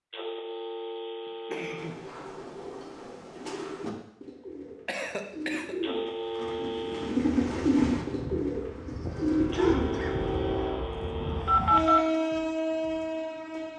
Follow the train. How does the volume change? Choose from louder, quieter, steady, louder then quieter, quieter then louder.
louder.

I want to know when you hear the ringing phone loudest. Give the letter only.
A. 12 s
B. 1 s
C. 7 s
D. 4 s
A.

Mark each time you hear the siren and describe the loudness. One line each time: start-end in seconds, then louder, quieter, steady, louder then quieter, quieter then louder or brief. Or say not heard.
not heard.